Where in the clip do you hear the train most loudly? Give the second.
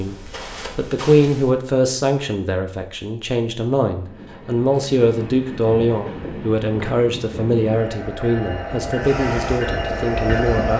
10 s.